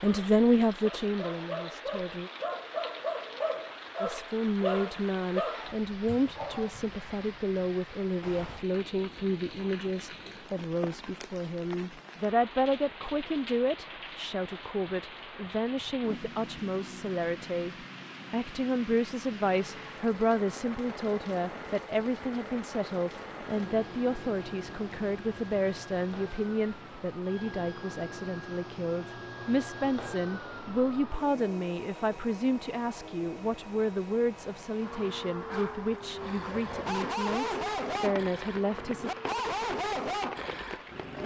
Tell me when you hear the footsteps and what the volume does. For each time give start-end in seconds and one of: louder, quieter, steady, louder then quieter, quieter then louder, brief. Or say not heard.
not heard.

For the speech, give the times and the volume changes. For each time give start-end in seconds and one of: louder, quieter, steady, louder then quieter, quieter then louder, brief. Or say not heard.
0.0-2.3 brief
4.0-39.1 steady.